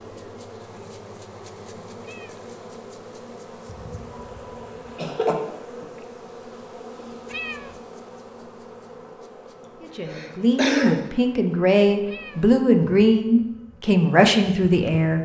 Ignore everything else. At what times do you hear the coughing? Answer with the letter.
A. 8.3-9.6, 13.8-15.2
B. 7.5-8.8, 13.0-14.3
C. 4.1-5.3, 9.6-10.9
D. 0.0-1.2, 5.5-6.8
C.